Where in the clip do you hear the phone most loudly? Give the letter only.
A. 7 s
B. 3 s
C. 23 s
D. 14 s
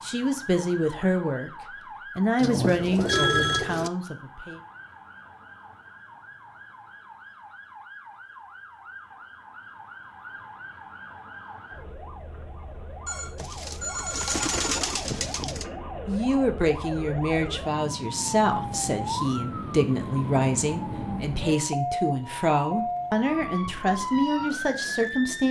B.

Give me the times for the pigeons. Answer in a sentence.
You can hear the pigeons from 2.4 to 3.9 s and from 13.3 to 15.7 s.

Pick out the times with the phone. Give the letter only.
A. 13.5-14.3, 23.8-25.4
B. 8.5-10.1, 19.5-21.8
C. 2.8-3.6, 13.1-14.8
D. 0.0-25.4
C.